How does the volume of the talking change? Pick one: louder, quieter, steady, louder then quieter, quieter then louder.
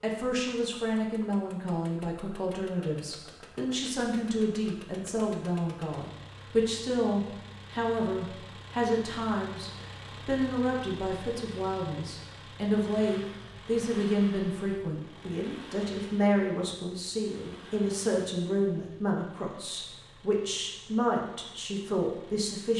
steady.